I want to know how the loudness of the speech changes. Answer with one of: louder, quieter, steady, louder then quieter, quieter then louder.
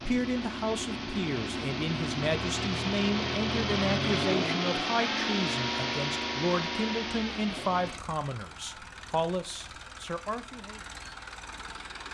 steady.